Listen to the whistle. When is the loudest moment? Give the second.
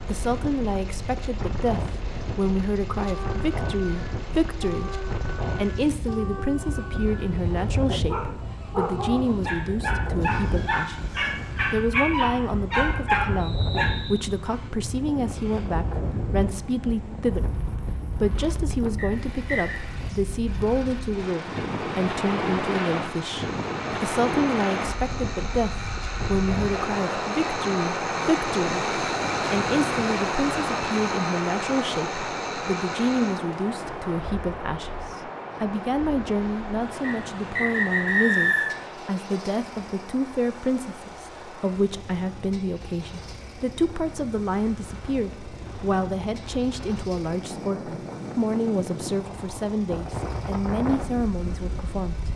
38 s.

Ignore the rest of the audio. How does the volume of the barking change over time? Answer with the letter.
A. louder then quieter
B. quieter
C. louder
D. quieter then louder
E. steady
C.